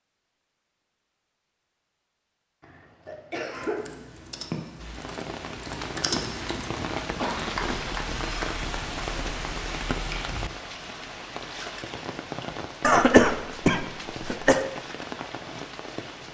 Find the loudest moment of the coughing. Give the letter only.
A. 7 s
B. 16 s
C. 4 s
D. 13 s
D.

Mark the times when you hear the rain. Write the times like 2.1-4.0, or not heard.
4.8-16.2.